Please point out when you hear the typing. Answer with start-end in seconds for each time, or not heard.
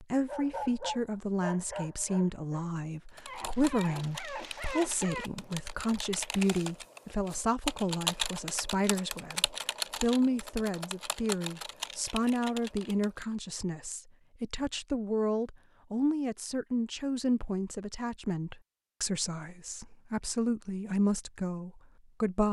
3.0-13.2.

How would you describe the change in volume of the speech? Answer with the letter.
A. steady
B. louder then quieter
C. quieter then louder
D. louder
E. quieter
A.